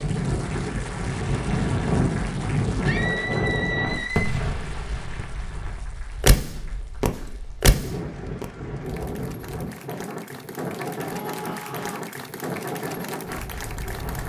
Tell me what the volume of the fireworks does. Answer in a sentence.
The loudness of the fireworks goes up.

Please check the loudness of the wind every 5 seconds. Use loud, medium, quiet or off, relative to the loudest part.
loud, medium, medium.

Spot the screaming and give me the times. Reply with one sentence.
You can hear the screaming from 2.9 to 4.3 s and from 11.1 to 12.1 s.